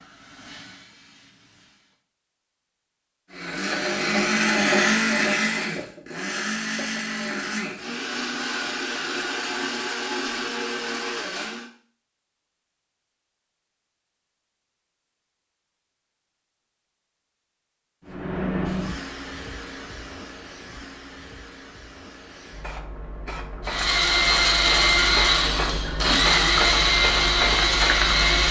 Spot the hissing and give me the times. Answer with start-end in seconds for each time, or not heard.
0.0-2.0, 18.1-28.4.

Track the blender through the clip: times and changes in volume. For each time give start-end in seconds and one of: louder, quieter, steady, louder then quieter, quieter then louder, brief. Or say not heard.
3.3-11.7 quieter
23.6-28.4 steady.